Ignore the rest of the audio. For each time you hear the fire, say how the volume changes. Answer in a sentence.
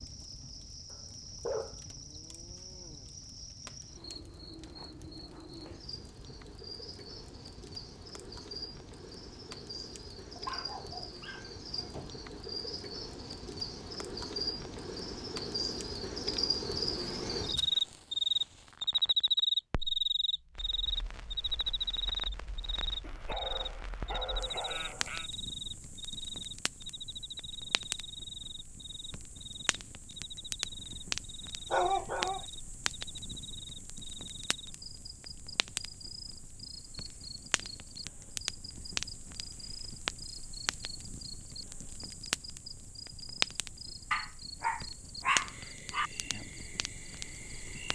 The fire can be heard from 0.0 to 47.9 s, getting louder.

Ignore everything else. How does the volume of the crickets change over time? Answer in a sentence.
The volume of the crickets goes up, then down.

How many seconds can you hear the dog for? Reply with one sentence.
You can hear the dog for 8 seconds altogether.